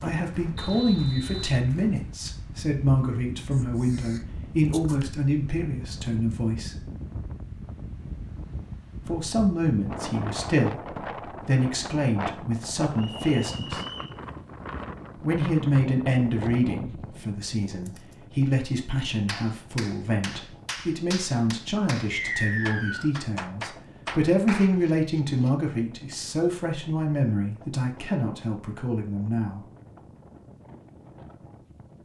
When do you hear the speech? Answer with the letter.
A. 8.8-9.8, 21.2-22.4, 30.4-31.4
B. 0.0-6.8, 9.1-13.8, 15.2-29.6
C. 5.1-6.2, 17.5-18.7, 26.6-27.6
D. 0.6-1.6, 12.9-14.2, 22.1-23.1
B.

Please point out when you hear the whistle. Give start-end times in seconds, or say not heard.
0.6-1.6, 12.9-14.2, 22.1-23.1.